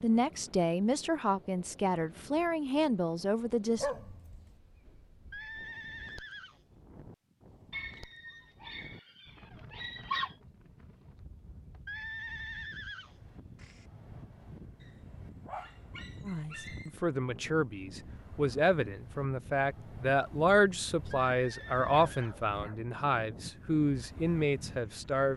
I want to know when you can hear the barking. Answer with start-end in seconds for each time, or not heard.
3.8-4.5, 7.7-10.3, 14.8-16.9, 21.9-22.9.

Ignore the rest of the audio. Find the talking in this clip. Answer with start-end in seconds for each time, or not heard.
0.0-3.9, 16.2-25.3.